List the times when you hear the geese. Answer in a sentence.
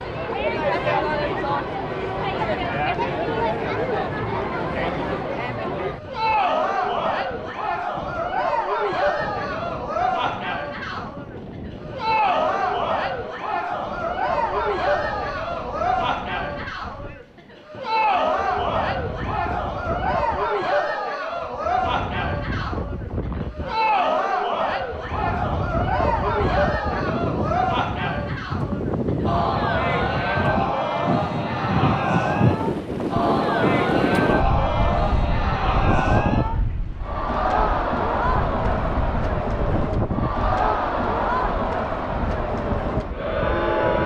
You can't hear the geese here.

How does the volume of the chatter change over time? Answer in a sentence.
The volume of the chatter stays about the same.